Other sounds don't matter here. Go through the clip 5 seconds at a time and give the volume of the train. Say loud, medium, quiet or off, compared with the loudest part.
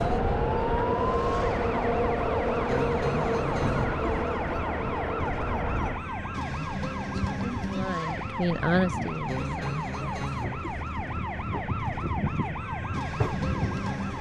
loud, medium, medium.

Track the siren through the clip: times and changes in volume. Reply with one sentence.
You can hear the siren from 0.0 to 14.1 s, at a steady volume.